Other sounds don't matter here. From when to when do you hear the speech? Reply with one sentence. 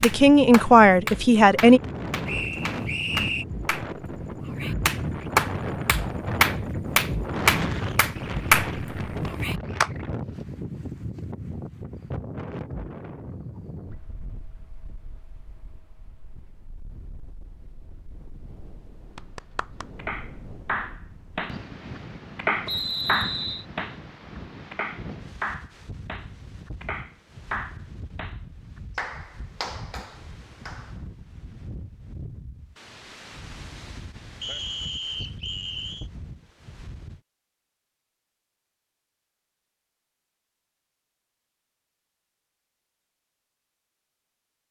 The speech can be heard from 0.0 to 1.8 s.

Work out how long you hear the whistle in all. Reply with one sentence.
The whistle can be heard for 4 seconds in total.